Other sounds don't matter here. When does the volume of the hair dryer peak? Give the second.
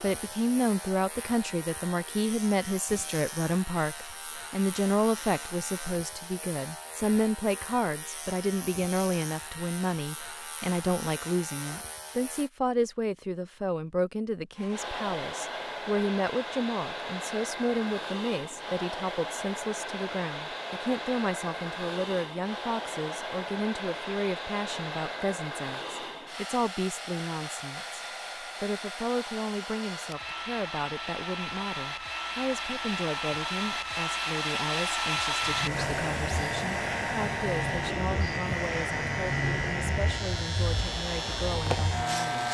35 s.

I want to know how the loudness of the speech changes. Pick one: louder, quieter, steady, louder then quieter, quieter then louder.
quieter.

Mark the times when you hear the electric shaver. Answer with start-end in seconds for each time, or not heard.
0.0-12.5, 35.4-42.4.